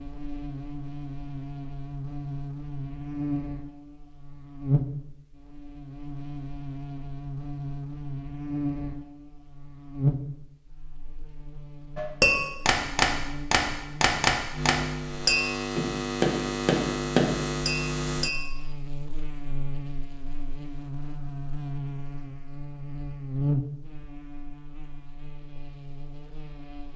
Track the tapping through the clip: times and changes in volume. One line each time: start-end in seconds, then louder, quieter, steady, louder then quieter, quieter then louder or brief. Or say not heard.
11.9-18.6 steady.